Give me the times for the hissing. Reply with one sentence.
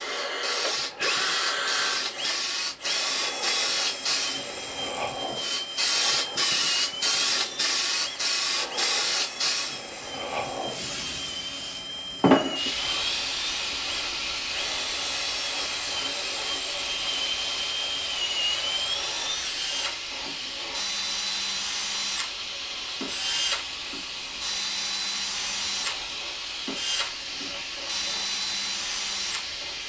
You can hear the hissing from 0.0 to 29.8 s.